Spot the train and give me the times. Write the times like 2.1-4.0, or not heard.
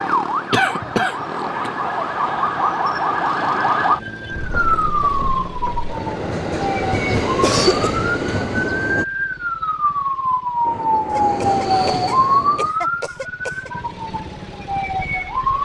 4.3-9.1, 10.6-12.8.